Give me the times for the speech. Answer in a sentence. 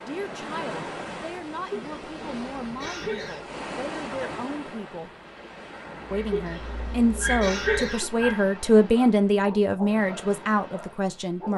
You can hear the speech from 0.0 to 5.1 s and from 6.1 to 11.5 s.